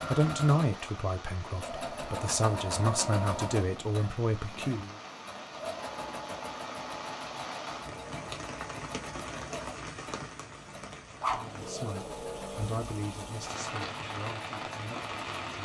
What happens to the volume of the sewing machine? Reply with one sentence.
The volume of the sewing machine goes down.